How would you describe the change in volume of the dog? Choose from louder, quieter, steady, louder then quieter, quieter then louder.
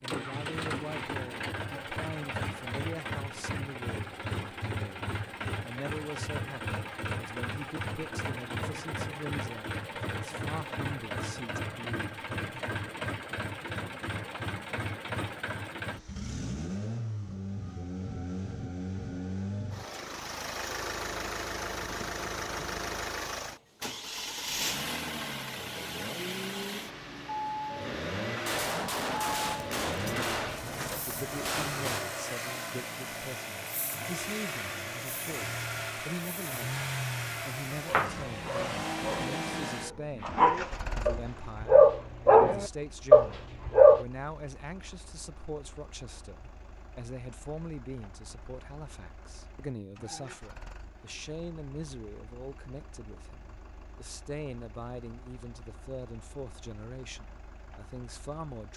louder.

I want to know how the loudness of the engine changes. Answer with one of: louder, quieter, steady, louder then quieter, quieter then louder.
quieter.